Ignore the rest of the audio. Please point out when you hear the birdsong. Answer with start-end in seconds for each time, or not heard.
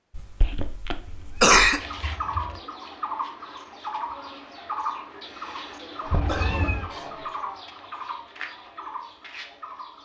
1.8-10.0.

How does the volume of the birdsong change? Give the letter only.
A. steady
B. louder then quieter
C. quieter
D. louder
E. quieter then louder
C.